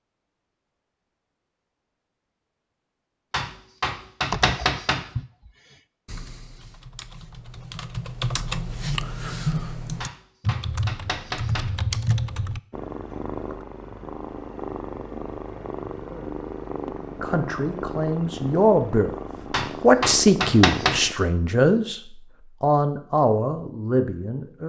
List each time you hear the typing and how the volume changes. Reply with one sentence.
The typing can be heard from 4.3 to 12.6 s, getting quieter then louder.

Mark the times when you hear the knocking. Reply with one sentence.
You can hear the knocking from 3.3 to 5.0 s, from 10.0 to 11.7 s and from 19.5 to 21.0 s.